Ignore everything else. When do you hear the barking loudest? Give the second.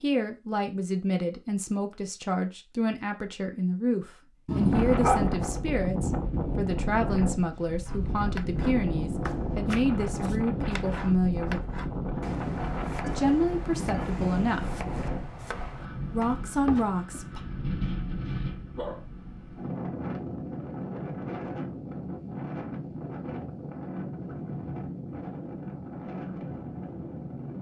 5 s.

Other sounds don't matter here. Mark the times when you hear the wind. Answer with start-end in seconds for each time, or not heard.
4.5-27.5.